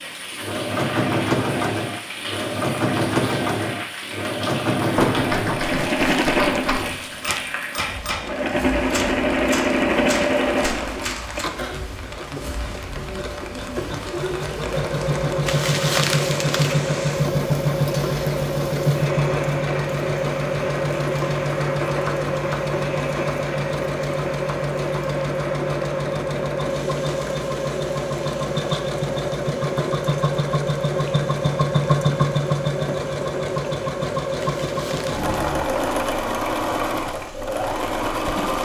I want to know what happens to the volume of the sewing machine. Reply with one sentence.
The volume of the sewing machine stays about the same.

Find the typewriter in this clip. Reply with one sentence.
The typewriter can be heard from 4.9 to 11.5 s.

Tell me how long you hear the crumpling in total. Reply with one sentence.
You can hear the crumpling for 4 seconds altogether.